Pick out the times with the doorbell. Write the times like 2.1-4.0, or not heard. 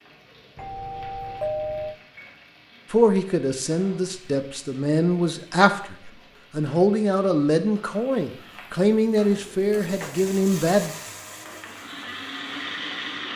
0.6-1.9.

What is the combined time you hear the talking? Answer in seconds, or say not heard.
8 s.